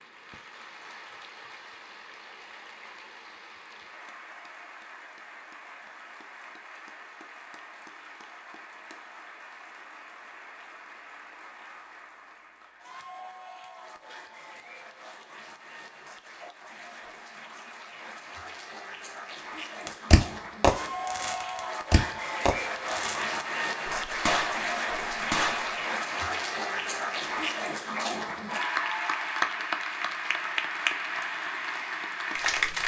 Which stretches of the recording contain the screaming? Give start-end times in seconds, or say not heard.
not heard.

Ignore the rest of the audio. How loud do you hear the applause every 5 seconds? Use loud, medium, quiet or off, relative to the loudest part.
quiet, quiet, quiet, quiet, loud, loud, loud.